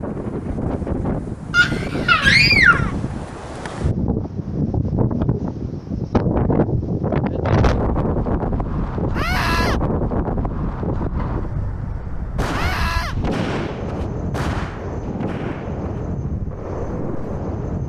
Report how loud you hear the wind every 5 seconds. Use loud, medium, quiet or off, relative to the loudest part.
loud, loud, medium, medium.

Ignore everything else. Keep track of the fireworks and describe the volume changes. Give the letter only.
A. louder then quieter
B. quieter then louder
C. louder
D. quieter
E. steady
D.